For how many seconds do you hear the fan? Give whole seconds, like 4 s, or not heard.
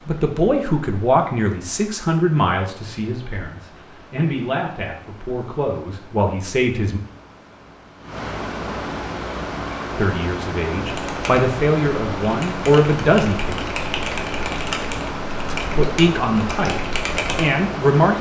18 s.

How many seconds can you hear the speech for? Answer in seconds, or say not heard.
13 s.